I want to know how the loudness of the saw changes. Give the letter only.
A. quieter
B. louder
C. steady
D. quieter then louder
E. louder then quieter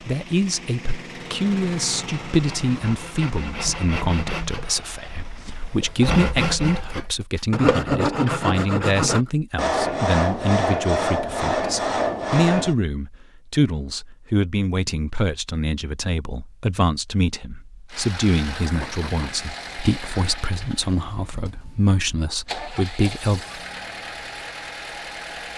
B.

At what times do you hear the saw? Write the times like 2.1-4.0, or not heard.
1.9-12.8.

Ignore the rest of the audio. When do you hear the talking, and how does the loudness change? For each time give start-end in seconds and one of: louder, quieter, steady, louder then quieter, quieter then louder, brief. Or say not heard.
0.1-23.4 steady.